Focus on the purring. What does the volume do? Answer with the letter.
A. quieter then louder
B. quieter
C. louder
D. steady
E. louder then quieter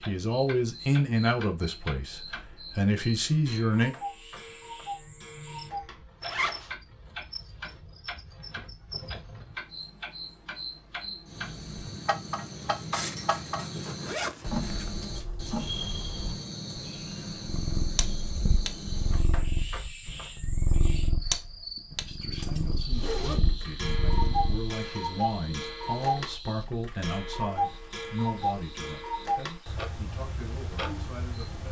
D.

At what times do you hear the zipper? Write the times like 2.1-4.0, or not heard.
6.2-6.8, 12.9-14.9, 22.4-23.4.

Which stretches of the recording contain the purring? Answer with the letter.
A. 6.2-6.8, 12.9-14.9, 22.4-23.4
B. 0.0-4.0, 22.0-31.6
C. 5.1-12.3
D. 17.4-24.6
D.